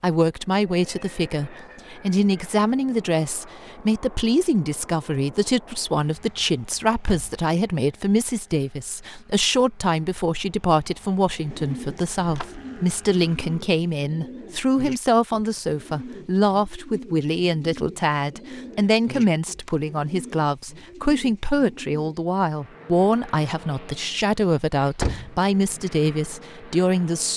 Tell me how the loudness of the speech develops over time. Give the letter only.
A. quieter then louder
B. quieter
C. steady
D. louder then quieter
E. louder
C.